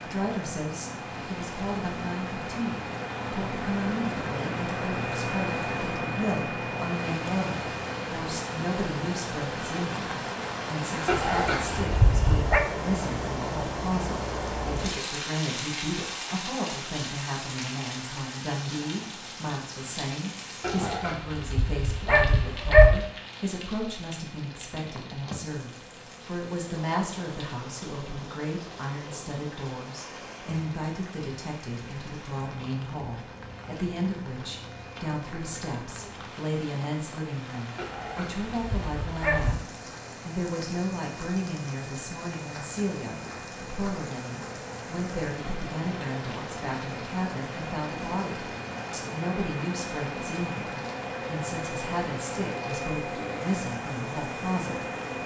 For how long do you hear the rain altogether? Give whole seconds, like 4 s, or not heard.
55 s.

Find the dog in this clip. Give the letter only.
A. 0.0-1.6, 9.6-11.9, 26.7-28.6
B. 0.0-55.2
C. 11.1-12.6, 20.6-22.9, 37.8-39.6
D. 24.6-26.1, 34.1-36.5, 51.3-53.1
C.